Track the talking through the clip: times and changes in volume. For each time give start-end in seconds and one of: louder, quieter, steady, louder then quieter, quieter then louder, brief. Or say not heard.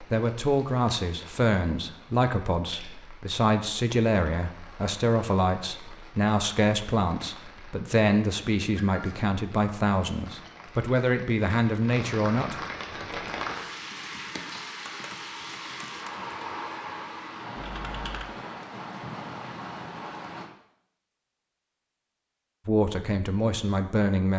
0.0-12.6 steady
22.6-24.3 brief.